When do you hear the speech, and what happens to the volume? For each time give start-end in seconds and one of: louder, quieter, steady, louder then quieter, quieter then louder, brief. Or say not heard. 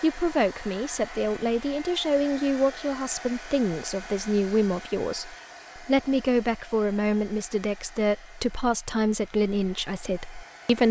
0.0-10.8 steady.